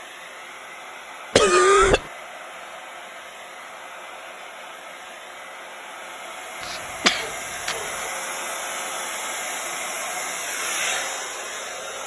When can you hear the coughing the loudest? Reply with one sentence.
The volume of the coughing peaks at 2 seconds.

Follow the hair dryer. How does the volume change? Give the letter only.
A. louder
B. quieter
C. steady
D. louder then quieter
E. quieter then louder
A.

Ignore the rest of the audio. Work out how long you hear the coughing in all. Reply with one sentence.
You can hear the coughing for 2 seconds altogether.